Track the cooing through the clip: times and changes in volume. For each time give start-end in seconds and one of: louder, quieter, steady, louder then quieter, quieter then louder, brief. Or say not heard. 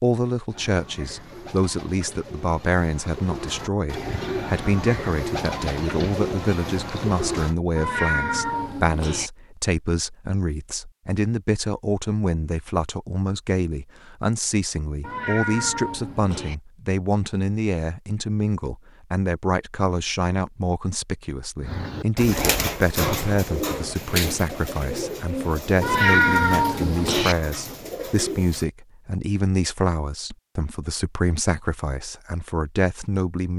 0.5-7.5 louder
21.6-28.6 quieter.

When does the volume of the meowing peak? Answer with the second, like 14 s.
26 s.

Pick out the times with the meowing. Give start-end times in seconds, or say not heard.
7.8-9.3, 15.0-16.6, 25.8-27.4.